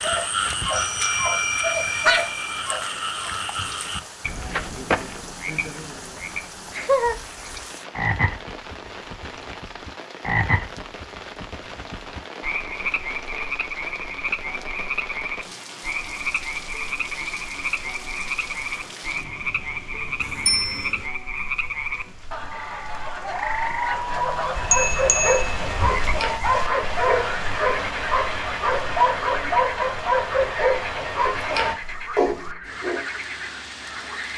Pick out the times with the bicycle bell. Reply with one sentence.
The bicycle bell can be heard from 0.7 to 2.5 s, from 20.4 to 20.9 s and from 24.6 to 26.3 s.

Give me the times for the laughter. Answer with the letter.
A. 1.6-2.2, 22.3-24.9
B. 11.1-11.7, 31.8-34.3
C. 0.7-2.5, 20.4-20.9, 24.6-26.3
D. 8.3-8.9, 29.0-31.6
A.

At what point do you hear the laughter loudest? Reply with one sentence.
The loudest moment of the laughter is at 2 seconds.